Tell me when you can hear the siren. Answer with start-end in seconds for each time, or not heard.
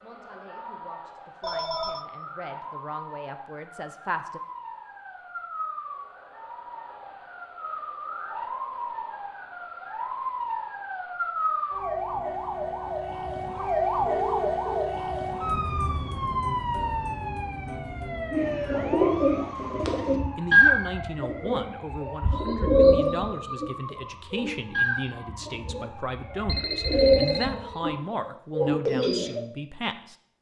0.0-28.0.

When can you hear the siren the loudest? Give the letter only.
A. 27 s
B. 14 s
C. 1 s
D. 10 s
B.